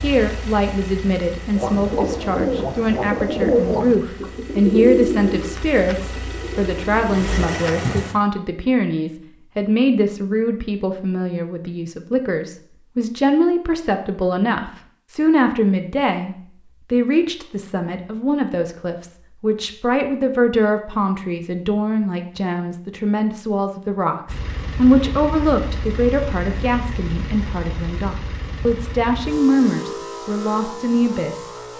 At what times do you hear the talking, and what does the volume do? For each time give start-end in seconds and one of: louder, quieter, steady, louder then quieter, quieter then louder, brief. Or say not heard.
0.0-31.5 steady.